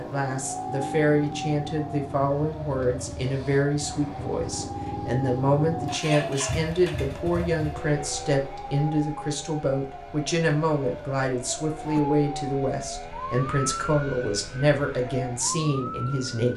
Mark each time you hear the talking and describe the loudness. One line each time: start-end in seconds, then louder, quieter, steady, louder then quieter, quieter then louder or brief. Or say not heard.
0.0-16.5 steady.